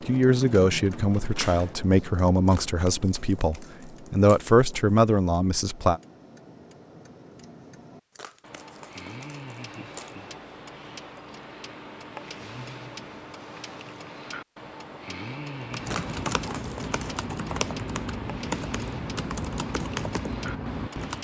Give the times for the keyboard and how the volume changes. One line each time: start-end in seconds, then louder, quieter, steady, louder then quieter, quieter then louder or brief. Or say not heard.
0.0-1.8 brief
15.6-21.2 steady.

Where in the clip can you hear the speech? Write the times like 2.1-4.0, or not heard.
0.1-6.0.